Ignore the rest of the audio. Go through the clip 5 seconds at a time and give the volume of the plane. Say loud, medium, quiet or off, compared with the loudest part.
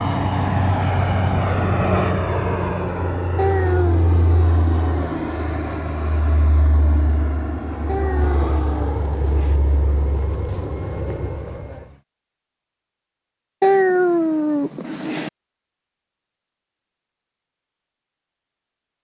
loud, medium, medium, off.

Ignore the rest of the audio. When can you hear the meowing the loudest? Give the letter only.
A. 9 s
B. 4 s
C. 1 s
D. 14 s
D.